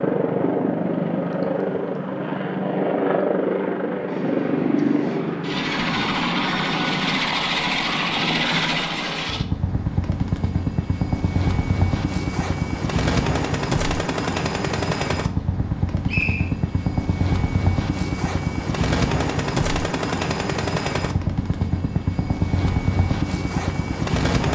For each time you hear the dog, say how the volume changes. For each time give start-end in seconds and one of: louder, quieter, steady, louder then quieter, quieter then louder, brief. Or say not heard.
not heard.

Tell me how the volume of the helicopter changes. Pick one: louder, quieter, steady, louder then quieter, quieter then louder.
steady.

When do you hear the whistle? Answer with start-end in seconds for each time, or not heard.
16.1-16.5.